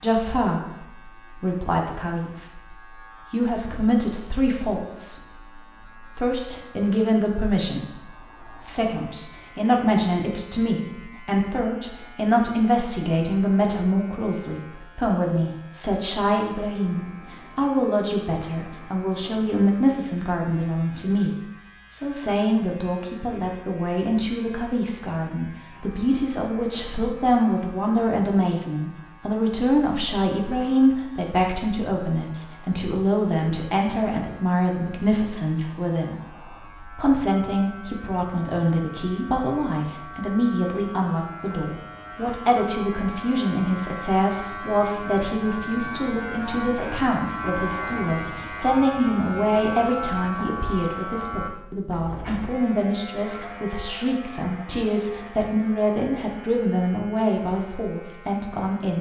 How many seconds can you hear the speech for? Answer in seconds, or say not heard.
58 s.